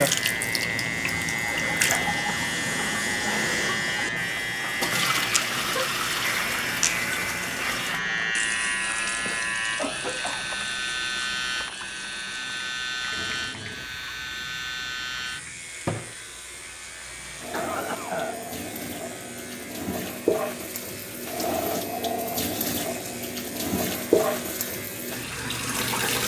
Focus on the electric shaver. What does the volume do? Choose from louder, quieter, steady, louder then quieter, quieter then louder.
quieter.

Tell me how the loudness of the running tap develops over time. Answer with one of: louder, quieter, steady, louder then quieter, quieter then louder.
quieter then louder.